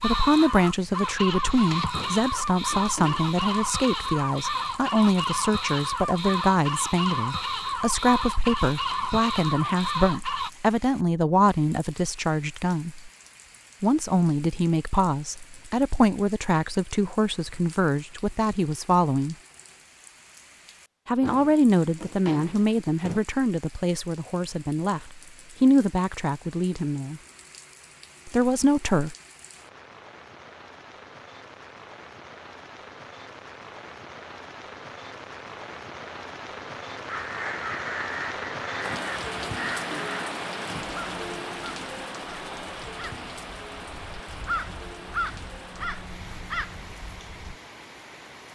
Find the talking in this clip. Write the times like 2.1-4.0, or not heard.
0.0-13.1, 13.8-19.4, 21.1-27.2, 28.2-29.1.